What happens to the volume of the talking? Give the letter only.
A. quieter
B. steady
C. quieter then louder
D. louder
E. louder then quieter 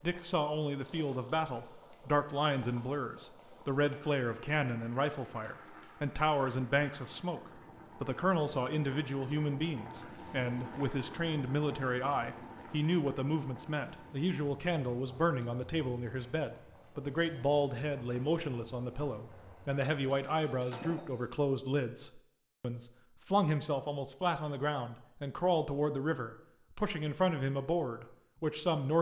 B.